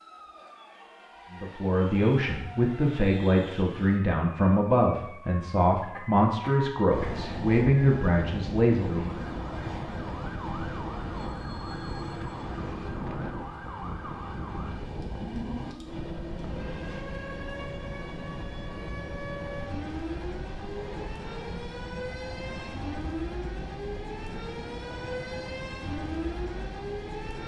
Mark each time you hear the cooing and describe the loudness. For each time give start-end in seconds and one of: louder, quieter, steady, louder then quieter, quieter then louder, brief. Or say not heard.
not heard.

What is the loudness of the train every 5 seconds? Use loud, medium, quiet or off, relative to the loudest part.
off, loud, loud, loud, medium, medium.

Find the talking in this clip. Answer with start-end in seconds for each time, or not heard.
1.3-9.2.